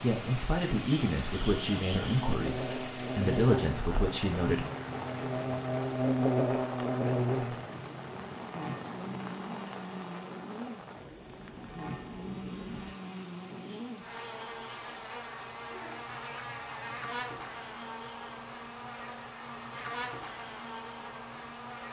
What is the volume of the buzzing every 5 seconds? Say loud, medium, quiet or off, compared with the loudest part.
loud, loud, medium, medium, medium.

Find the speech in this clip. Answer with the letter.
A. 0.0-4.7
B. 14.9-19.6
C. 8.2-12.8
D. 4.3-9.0
A.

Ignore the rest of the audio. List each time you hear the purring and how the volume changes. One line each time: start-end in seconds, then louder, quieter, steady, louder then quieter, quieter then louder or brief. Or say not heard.
not heard.